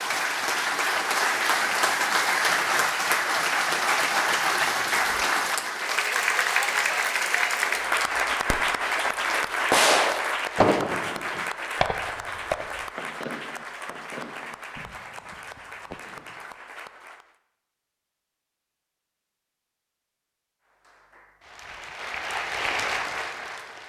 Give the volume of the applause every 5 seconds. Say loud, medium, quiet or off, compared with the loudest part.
loud, loud, medium, quiet, medium.